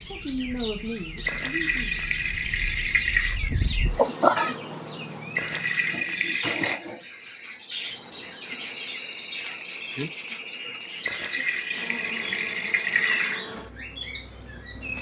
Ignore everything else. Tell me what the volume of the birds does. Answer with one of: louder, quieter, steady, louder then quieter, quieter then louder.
steady.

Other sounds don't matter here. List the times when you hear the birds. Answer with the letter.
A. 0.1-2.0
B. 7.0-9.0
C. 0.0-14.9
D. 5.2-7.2
C.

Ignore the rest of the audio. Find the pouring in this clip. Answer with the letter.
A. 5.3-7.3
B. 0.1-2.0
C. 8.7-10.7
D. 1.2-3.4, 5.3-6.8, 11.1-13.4
D.